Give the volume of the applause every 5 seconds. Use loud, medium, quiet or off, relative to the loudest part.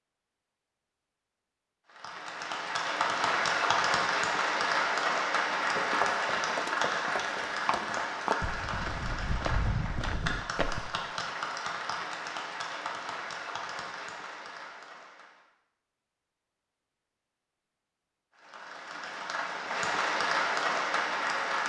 loud, loud, medium, medium, loud.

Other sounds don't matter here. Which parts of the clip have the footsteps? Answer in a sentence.
The footsteps can be heard from 5.5 to 10.9 s.